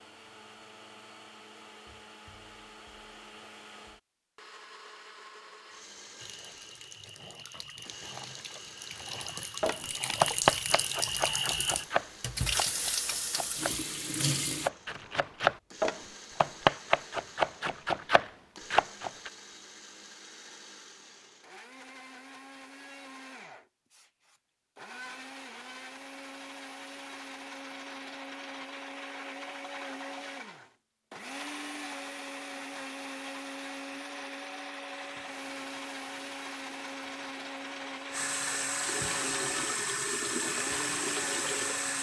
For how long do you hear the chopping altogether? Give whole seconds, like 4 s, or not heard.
10 s.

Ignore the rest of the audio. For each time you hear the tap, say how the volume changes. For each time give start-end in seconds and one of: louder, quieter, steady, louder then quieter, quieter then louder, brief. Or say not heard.
6.2-14.7 louder
34.9-41.9 louder.